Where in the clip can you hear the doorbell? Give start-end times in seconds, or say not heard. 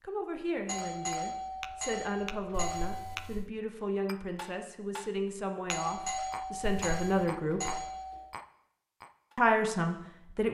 0.7-3.2, 5.7-8.2.